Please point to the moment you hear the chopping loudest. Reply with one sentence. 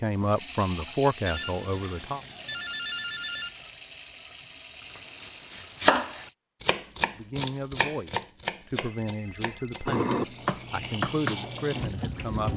The volume of the chopping peaks at 6 seconds.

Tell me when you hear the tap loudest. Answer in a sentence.
The volume of the tap peaks at 10 seconds.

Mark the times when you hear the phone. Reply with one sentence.
You can hear the phone from 1.2 to 3.5 s and from 8.8 to 10.1 s.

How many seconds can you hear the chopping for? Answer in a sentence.
You can hear the chopping for 6 seconds altogether.